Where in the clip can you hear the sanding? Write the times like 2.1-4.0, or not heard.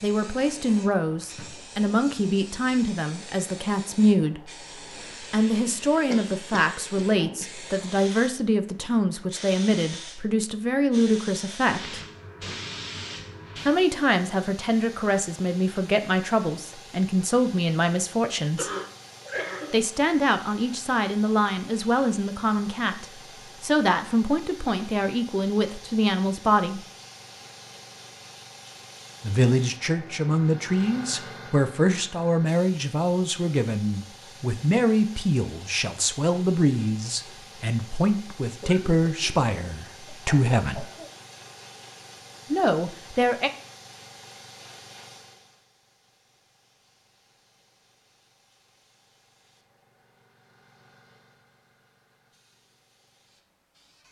not heard.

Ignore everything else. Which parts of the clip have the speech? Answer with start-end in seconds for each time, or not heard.
0.0-4.5, 5.3-12.0, 13.7-18.7, 19.7-26.9, 29.2-40.9, 42.5-43.5.